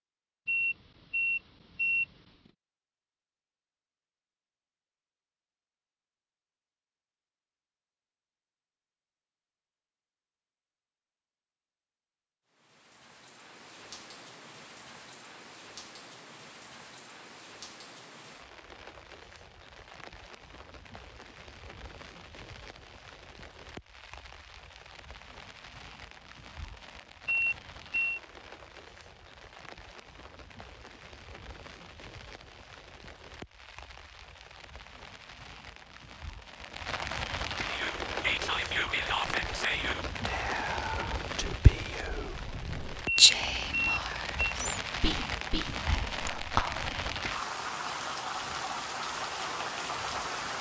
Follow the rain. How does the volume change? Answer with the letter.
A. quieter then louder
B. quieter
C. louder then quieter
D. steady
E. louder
E.